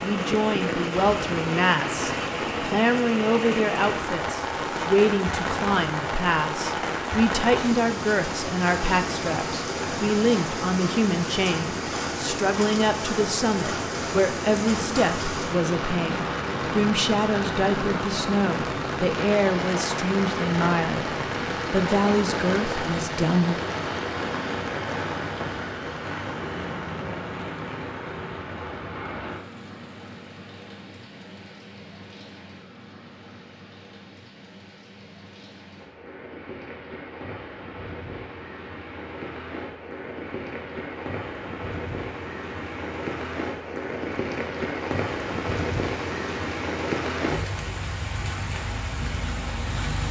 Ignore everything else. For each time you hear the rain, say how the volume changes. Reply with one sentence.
The rain can be heard from 0.0 to 50.0 s, getting quieter then louder.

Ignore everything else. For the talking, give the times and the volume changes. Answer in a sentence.
You can hear the talking from 0.0 to 21.1 s, at a steady volume; and briefly from 21.7 to 23.6 s.